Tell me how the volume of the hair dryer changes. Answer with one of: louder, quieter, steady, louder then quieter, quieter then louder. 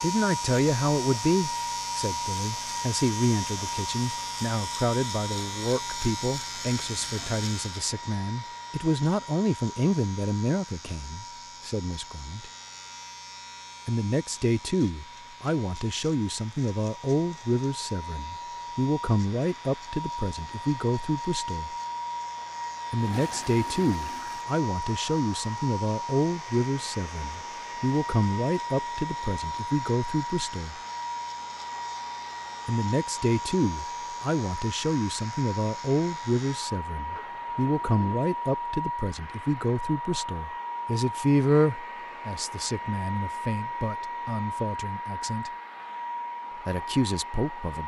quieter then louder.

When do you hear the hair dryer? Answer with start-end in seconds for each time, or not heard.
0.0-47.8.